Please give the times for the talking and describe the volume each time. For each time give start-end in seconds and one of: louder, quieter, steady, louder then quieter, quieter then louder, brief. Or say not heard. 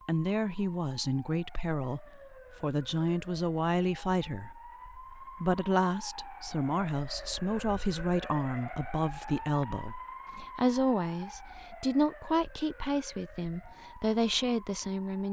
0.1-15.2 steady.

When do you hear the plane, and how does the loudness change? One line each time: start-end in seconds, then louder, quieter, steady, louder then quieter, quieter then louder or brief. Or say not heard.
not heard.